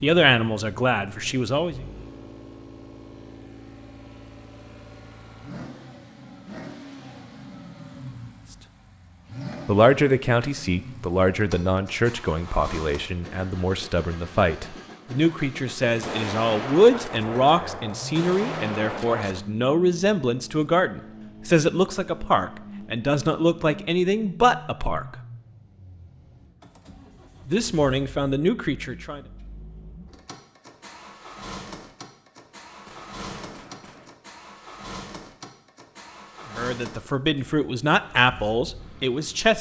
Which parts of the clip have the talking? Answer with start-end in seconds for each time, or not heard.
0.0-1.8, 9.7-25.1, 27.4-29.2, 36.5-39.5.